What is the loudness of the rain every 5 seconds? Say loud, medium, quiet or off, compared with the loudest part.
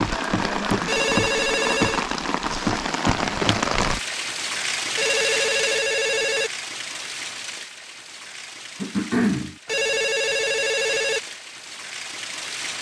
loud, medium, medium.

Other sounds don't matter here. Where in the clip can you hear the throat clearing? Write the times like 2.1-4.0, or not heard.
0.1-1.0, 8.8-9.6.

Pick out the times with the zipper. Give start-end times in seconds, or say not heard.
not heard.